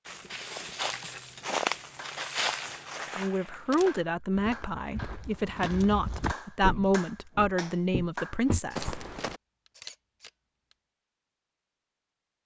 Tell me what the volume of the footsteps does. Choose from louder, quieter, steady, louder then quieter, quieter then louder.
quieter then louder.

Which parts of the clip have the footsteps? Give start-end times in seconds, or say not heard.
0.1-9.4.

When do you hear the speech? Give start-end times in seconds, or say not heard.
3.1-8.9.